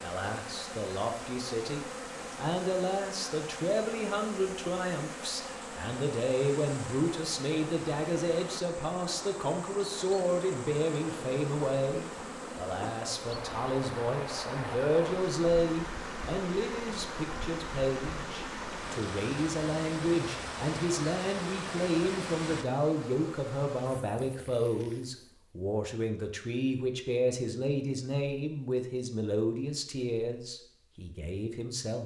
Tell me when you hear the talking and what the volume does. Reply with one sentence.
The talking can be heard from 0.0 to 32.0 s, at a steady volume.